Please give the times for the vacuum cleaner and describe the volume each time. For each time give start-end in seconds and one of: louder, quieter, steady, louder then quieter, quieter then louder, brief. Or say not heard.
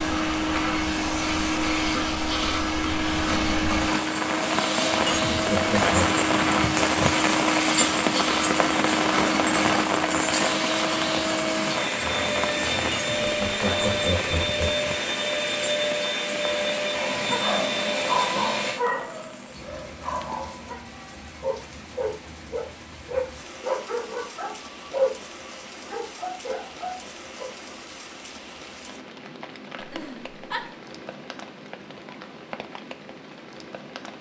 0.0-18.8 steady.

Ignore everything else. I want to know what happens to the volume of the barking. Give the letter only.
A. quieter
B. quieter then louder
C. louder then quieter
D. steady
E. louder
D.